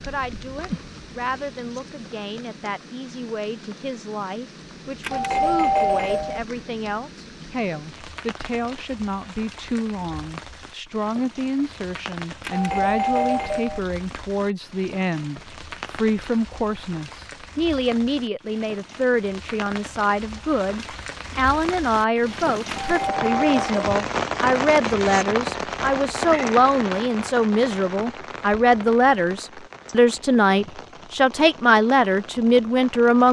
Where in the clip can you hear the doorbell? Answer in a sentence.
The doorbell can be heard from 5.0 to 6.4 s, from 12.4 to 13.8 s and from 22.6 to 23.9 s.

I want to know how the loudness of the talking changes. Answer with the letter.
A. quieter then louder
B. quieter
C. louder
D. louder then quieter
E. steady
C.